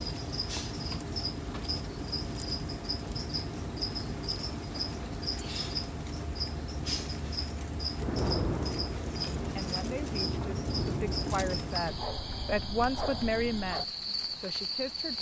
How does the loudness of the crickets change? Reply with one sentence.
The volume of the crickets stays about the same.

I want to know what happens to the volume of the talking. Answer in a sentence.
The loudness of the talking goes up, then down.